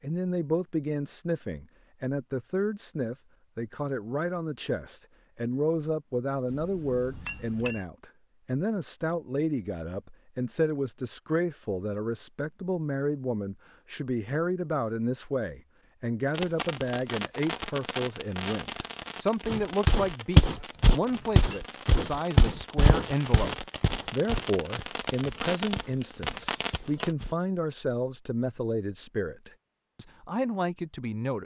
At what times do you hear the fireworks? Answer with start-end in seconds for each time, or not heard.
16.3-27.1.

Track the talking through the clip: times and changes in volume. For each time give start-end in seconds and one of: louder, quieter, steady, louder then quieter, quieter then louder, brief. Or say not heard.
0.0-31.4 steady.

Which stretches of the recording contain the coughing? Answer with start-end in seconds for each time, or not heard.
not heard.